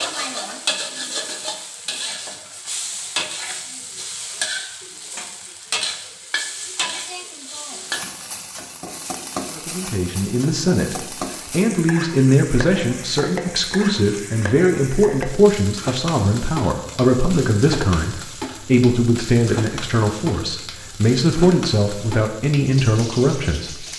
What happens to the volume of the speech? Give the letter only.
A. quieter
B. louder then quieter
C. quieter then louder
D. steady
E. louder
D.